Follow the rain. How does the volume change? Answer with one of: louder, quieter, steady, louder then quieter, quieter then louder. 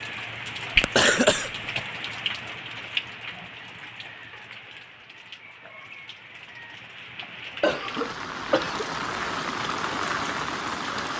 quieter then louder.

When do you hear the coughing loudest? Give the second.
1 s.